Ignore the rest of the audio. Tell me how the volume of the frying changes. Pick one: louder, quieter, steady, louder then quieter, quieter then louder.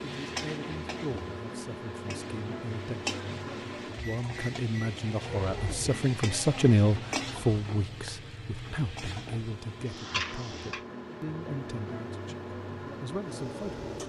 louder.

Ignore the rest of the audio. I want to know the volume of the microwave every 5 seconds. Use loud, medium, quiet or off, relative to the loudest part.
loud, medium, loud.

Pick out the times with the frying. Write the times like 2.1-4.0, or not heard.
0.0-10.8.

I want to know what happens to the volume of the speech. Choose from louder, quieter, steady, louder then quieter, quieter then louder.
louder then quieter.